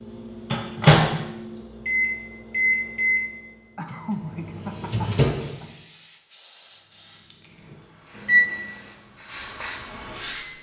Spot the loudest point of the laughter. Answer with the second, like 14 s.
4 s.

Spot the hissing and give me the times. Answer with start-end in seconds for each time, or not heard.
4.3-10.5.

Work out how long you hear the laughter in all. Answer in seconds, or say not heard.
2 s.